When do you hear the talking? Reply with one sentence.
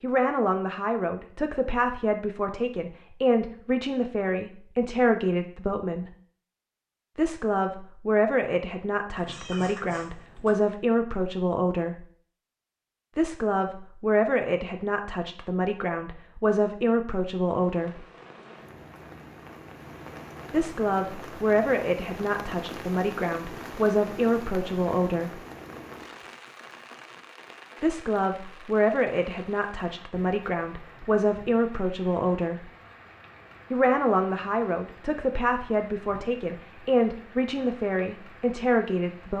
The talking can be heard from 0.0 to 6.0 s, from 7.2 to 12.1 s, from 13.2 to 18.1 s, from 20.5 to 25.4 s, from 27.8 to 32.7 s and from 33.7 to 39.3 s.